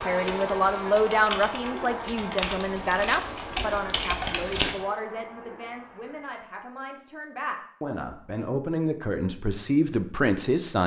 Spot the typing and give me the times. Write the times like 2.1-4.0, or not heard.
0.1-4.7.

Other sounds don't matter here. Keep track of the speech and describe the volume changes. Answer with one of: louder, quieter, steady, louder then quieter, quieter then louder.
quieter then louder.